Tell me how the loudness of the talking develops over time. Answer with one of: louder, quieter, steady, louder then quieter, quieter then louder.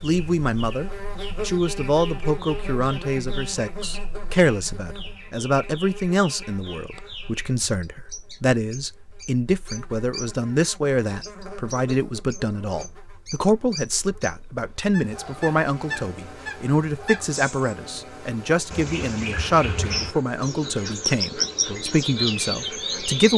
steady.